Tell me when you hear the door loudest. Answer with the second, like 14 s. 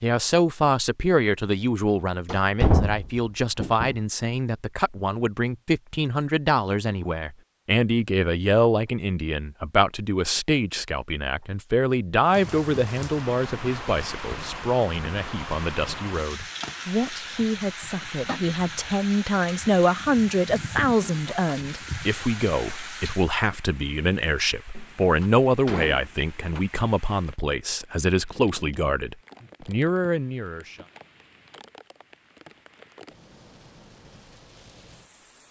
3 s.